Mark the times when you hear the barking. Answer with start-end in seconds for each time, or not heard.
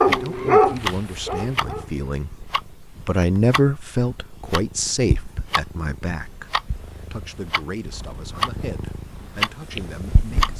0.0-1.9.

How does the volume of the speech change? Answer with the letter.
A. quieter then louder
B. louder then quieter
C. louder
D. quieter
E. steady
B.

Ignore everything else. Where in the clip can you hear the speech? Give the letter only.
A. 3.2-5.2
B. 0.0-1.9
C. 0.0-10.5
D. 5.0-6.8
C.